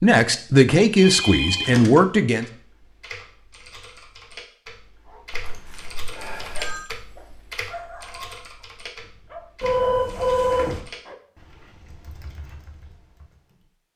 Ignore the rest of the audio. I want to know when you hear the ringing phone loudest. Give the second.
10 s.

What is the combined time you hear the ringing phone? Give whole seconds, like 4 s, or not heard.
4 s.